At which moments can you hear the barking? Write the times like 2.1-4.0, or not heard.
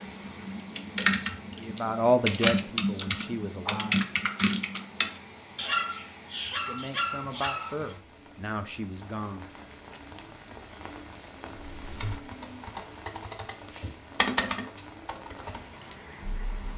5.5-8.0.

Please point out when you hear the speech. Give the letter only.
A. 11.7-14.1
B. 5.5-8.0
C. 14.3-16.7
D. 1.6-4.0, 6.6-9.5
D.